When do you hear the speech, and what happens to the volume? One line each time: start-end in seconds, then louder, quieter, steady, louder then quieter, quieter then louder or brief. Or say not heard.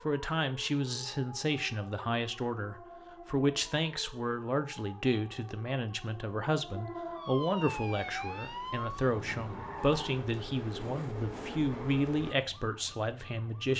0.1-13.7 steady.